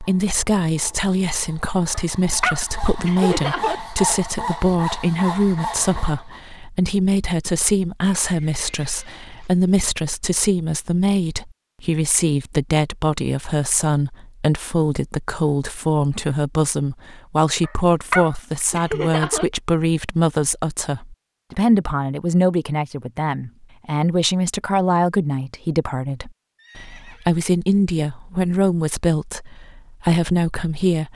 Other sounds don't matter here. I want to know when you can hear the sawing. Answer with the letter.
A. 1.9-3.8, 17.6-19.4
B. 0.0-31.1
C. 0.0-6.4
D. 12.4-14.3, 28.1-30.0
C.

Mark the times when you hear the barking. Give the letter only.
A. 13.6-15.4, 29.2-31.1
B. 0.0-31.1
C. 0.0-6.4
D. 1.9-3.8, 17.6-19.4
D.